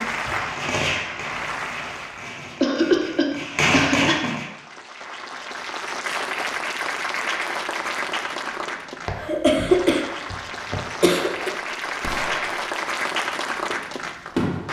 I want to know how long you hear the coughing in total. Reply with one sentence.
You can hear the coughing for 4 seconds altogether.